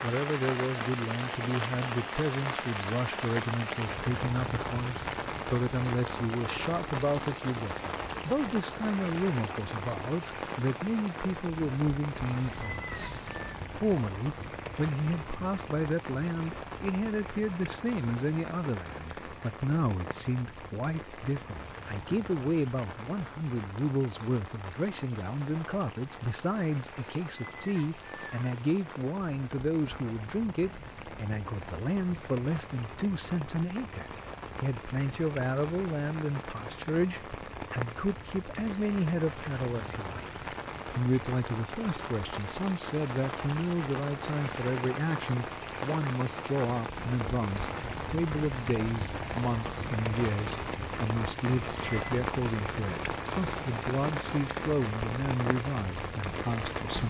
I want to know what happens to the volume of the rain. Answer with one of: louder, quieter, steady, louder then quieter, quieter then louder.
quieter then louder.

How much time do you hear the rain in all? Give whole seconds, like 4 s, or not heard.
57 s.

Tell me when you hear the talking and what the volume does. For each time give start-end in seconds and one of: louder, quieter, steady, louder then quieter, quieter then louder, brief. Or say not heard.
0.0-57.0 steady.